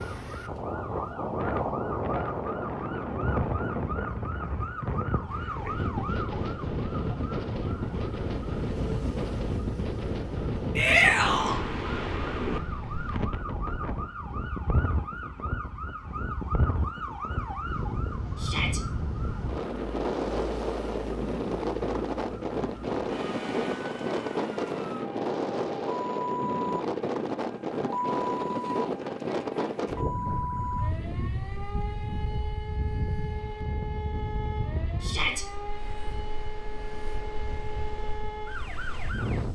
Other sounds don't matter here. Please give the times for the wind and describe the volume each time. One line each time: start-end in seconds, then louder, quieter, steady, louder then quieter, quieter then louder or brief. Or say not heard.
0.0-39.5 quieter.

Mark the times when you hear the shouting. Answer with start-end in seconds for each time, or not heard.
10.8-11.6, 18.4-18.8, 35.0-35.5.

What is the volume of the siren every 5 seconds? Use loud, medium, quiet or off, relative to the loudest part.
medium, medium, medium, medium, medium, loud, medium, medium.